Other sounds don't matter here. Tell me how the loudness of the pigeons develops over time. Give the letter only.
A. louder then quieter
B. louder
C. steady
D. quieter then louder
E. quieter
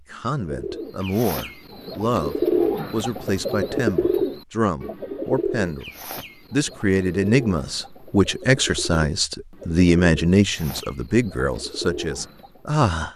E.